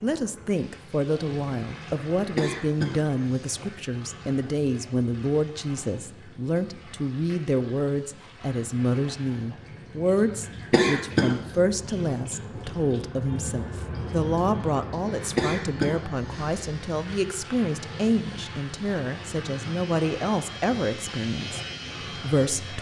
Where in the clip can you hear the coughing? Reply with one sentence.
The coughing can be heard from 2.4 to 3.5 s, from 10.7 to 11.3 s and from 15.3 to 16.6 s.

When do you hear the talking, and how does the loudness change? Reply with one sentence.
You can hear the talking from 0.0 to 21.6 s, at a steady volume; and briefly from 22.2 to 22.7 s.